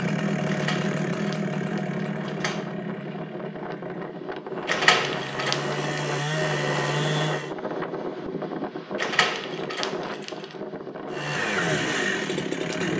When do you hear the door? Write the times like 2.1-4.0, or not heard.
0.5-2.7, 4.7-5.8, 8.9-10.6.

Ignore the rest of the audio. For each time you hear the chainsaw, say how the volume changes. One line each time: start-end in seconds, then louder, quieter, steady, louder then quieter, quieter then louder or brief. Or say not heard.
0.0-7.5 quieter then louder
11.1-12.9 brief.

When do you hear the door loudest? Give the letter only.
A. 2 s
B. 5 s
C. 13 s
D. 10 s
B.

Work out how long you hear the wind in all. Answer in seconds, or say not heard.
13 s.